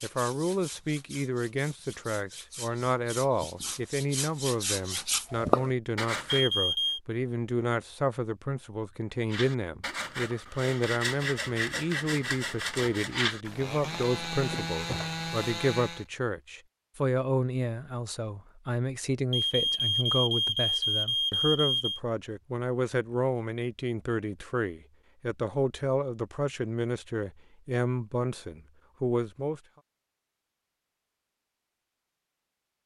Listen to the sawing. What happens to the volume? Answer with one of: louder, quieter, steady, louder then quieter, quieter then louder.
louder.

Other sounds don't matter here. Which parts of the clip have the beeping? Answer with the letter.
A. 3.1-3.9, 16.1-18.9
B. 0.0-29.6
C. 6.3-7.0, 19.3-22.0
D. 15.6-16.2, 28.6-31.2
C.